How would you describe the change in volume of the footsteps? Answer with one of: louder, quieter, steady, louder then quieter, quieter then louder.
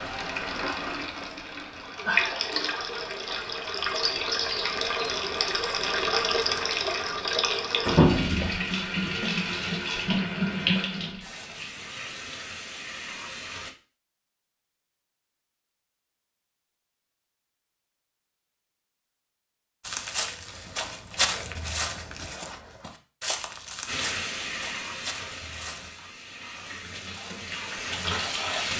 quieter.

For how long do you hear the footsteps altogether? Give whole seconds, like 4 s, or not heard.
6 s.